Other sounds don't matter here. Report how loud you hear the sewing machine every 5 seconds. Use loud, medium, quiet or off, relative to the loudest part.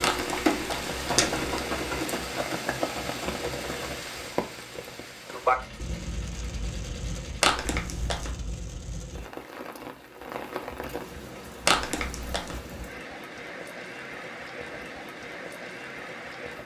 loud, quiet, off, off.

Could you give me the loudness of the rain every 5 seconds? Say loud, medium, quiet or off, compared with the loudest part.
loud, loud, medium, medium.